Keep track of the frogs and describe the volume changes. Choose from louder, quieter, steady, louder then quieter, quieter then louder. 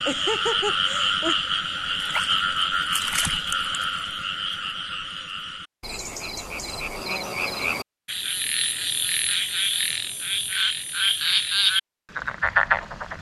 quieter then louder.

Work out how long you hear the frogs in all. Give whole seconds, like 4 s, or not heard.
13 s.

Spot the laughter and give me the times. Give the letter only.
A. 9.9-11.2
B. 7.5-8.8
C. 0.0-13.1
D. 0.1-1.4
D.